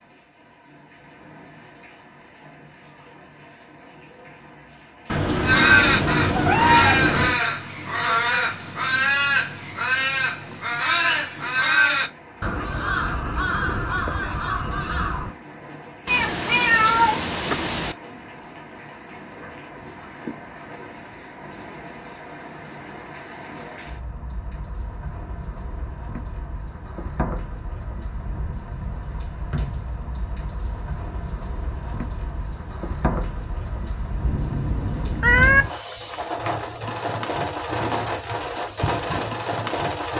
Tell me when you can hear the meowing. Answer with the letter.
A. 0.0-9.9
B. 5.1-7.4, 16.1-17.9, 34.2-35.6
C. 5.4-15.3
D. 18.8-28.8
B.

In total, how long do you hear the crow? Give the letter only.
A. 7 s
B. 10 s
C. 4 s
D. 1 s
B.